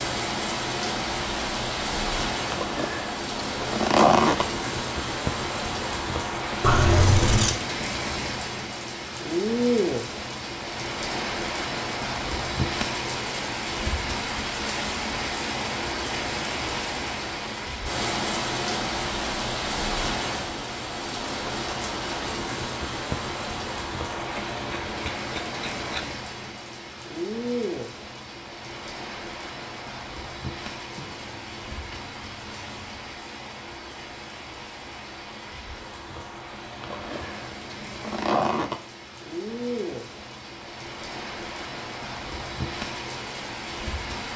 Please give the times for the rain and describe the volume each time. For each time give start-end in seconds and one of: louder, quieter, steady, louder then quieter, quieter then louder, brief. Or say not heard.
0.0-44.3 quieter.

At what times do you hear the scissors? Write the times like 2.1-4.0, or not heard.
6.6-7.5, 24.1-26.1, 30.9-33.0.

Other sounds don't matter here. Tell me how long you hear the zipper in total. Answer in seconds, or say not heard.
4 s.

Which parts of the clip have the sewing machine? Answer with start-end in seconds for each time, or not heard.
not heard.